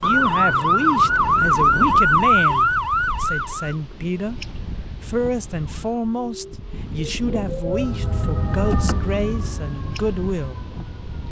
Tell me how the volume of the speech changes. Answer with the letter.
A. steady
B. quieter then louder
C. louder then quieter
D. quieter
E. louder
A.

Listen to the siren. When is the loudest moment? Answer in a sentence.
The loudest moment of the siren is at 2 seconds.